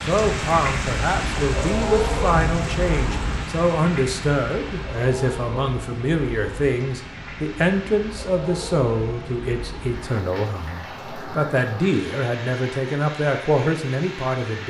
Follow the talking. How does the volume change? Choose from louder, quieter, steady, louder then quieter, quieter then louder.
steady.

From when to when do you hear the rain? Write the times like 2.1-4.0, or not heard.
0.0-14.6.